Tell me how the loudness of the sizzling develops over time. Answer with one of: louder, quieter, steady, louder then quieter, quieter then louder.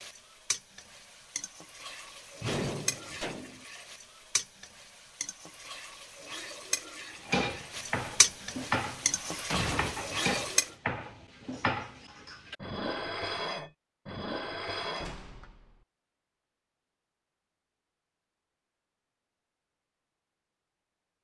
louder.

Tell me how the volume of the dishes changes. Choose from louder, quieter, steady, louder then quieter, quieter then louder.
steady.